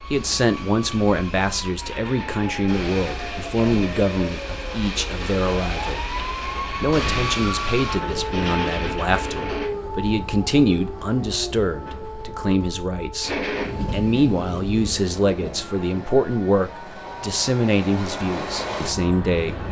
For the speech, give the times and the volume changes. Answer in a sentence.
The speech can be heard from 0.1 to 19.6 s, at a steady volume.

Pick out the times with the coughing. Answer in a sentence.
You can't hear the coughing here.